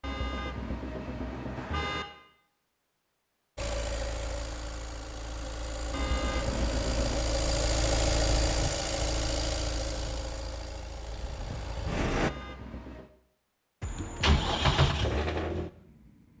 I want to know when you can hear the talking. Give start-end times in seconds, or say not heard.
not heard.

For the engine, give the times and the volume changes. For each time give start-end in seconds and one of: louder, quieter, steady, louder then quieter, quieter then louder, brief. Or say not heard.
3.5-12.3 louder then quieter
13.8-16.3 brief.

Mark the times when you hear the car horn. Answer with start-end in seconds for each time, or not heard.
0.0-2.0, 5.9-7.2, 12.1-13.1.